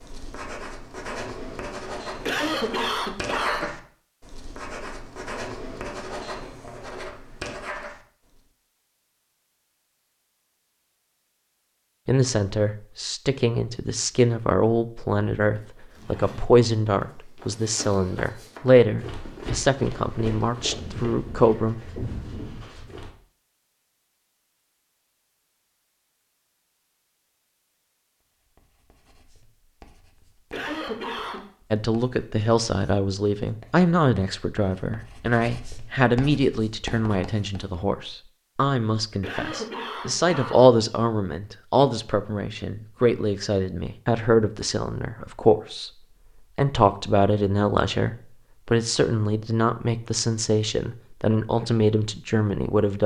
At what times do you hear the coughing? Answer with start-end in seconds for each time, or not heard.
2.2-3.7, 30.5-31.4, 39.2-40.6.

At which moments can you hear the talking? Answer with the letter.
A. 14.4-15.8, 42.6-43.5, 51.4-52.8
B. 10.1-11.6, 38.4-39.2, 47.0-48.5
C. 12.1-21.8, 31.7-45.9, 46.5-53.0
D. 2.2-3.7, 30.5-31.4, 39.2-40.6
C.